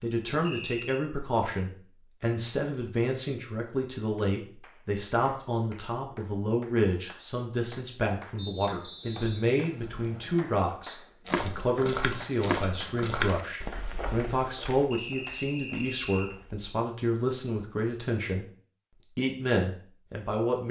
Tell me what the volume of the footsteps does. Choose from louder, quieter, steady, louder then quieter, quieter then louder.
quieter.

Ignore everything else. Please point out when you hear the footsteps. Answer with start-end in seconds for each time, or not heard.
11.2-16.7.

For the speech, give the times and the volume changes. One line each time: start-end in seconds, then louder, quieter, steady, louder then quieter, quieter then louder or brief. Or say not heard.
0.0-18.4 steady
19.1-20.6 brief.